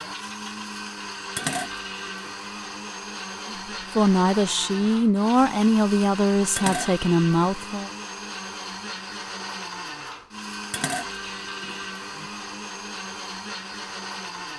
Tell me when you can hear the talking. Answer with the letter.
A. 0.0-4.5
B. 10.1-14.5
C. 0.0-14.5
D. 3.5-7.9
D.